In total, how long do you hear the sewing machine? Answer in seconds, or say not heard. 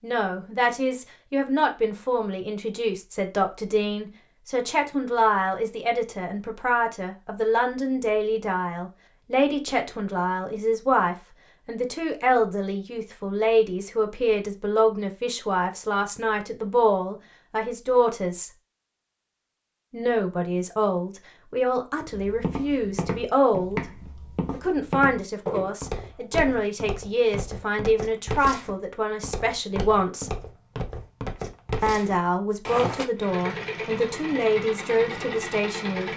3 s.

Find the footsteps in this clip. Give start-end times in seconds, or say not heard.
22.1-33.0.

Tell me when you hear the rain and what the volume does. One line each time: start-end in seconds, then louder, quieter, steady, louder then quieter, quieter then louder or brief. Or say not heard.
not heard.